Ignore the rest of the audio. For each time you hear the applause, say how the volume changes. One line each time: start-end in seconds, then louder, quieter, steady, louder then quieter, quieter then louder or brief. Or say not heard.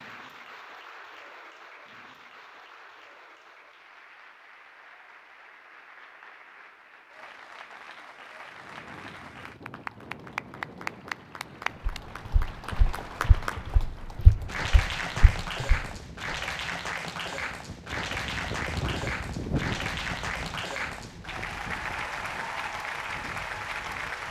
0.0-24.2 louder.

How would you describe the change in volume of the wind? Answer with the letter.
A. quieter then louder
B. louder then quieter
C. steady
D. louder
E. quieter
B.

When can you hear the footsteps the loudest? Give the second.
14 s.